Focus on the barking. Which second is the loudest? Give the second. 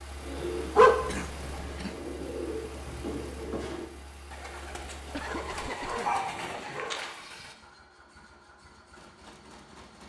1 s.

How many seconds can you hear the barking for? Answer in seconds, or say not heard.
3 s.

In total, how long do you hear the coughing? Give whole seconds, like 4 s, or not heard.
2 s.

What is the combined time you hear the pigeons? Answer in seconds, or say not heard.
7 s.